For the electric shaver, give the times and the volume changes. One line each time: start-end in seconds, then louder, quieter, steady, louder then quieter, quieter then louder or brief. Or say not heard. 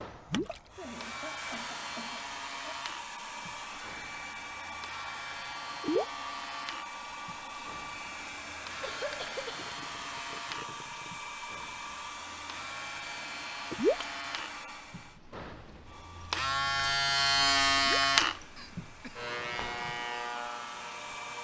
0.0-21.3 louder.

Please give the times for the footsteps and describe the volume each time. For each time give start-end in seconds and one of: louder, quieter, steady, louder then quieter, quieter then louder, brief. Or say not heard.
not heard.